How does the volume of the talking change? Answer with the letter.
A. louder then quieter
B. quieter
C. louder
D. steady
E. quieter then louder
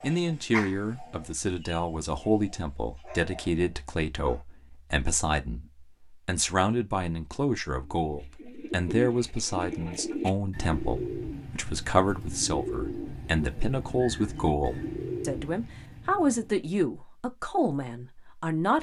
D.